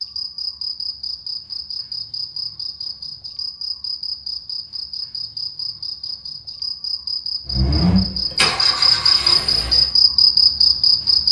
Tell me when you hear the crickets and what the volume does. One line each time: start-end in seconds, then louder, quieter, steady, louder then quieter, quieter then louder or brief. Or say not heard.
0.0-11.2 louder.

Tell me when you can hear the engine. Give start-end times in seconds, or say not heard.
7.5-9.9.